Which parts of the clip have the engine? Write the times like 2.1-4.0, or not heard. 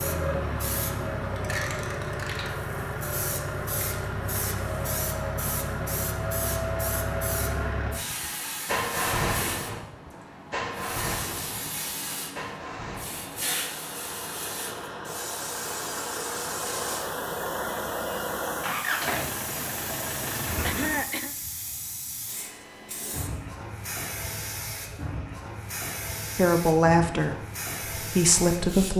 0.0-21.1.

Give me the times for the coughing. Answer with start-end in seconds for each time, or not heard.
20.6-21.4.